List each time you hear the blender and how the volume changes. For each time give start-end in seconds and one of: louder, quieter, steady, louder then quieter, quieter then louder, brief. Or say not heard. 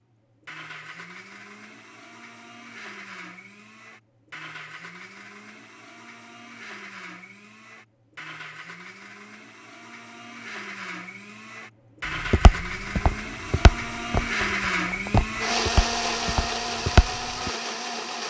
0.0-18.2 louder.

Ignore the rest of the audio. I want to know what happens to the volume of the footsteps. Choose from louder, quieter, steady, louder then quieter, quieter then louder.
louder.